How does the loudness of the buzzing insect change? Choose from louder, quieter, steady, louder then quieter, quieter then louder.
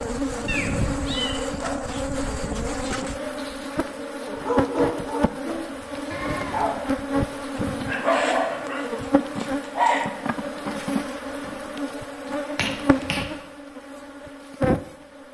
steady.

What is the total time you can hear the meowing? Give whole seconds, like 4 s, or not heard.
2 s.